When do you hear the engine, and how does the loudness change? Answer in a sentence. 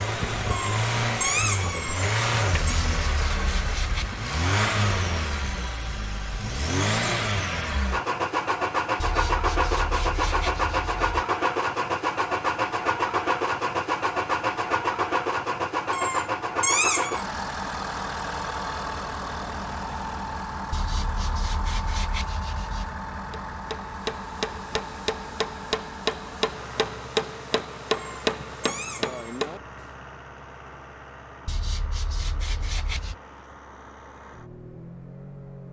The engine can be heard from 0.0 to 35.6 s, getting quieter.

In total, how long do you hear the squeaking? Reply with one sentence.
The squeaking can be heard for 5 seconds in total.